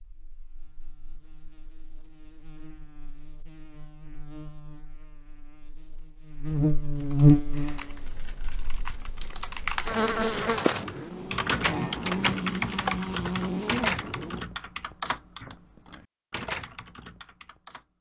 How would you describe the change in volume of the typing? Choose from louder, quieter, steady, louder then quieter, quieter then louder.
louder then quieter.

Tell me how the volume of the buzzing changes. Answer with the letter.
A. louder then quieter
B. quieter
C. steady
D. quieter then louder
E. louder
A.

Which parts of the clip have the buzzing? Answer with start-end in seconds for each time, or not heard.
0.0-14.4.